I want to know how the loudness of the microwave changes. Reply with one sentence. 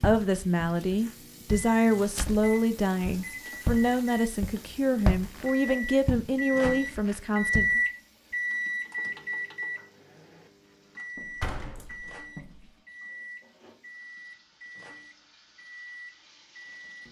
The loudness of the microwave goes up, then down.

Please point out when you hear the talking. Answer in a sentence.
You can hear the talking from 0.0 to 7.8 s.